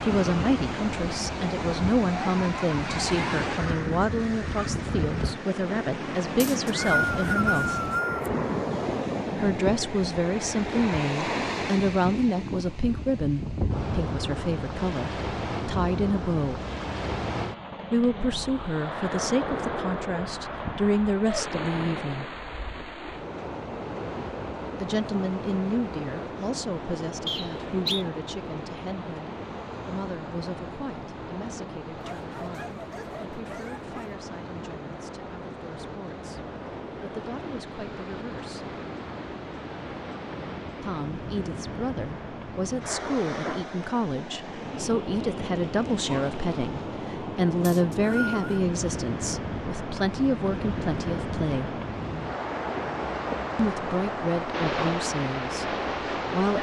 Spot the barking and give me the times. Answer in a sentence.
You can hear the barking from 32.0 to 34.2 s.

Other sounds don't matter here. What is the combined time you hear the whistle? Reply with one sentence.
You can hear the whistle for 4 seconds altogether.